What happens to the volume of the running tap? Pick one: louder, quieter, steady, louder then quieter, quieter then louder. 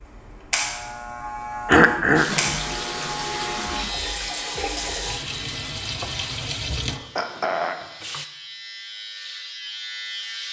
steady.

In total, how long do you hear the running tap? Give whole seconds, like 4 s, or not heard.
6 s.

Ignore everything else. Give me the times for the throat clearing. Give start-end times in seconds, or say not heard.
1.6-2.3, 6.8-7.8.